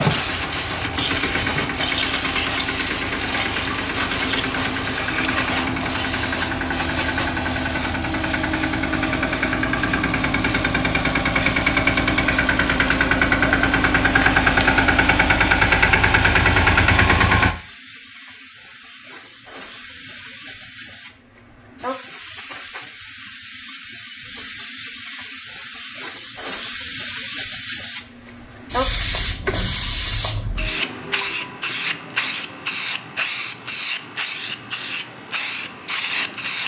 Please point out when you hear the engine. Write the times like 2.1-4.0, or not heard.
0.0-17.6.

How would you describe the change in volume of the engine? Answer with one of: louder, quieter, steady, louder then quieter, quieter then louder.
louder.